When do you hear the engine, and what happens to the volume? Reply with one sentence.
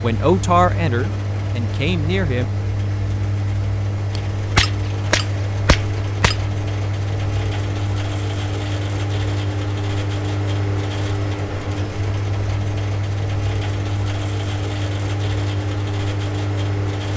The engine can be heard from 0.0 to 17.1 s, at a steady volume.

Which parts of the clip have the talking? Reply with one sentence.
The talking can be heard from 0.0 to 2.5 s.